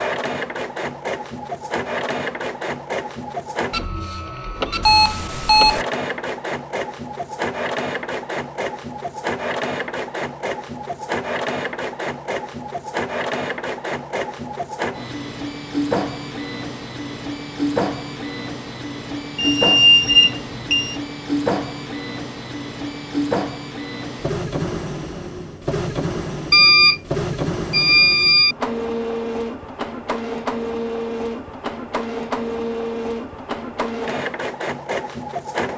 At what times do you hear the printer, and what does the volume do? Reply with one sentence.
The printer can be heard from 0.0 to 35.7 s, at a steady volume.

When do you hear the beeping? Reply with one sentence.
You can hear the beeping from 4.8 to 5.8 s, from 19.4 to 20.9 s, from 26.5 to 27.0 s and from 27.7 to 28.6 s.